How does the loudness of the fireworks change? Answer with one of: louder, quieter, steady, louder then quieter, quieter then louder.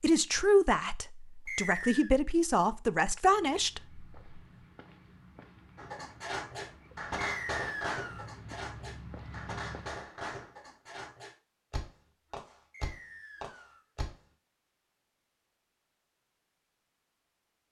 quieter.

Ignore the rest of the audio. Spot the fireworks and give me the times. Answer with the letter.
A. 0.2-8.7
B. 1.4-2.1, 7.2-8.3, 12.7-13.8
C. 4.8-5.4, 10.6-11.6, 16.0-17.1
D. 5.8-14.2
D.